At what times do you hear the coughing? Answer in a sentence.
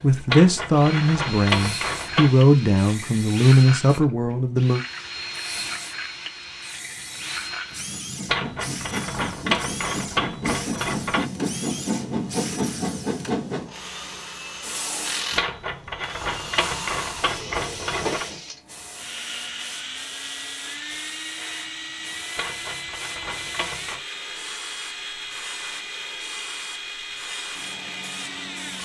You can't hear the coughing here.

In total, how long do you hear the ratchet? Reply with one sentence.
You can hear the ratchet for 10 seconds altogether.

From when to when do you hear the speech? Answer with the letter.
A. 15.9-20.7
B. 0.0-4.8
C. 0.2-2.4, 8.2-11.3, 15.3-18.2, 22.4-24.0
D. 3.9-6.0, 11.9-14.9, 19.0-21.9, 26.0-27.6
B.